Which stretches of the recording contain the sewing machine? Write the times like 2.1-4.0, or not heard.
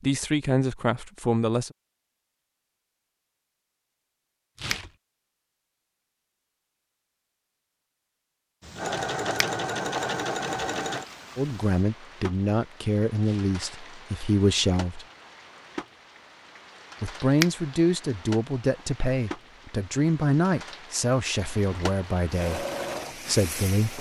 8.8-11.1, 22.3-23.9.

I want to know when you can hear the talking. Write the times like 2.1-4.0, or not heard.
0.0-1.7, 11.3-15.1, 17.0-22.6, 23.2-23.9.